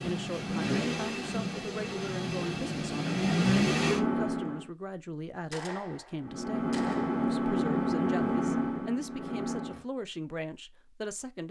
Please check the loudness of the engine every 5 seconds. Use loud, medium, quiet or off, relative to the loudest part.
loud, loud, off.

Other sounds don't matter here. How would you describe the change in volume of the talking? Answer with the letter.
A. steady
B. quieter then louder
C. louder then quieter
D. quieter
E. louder
A.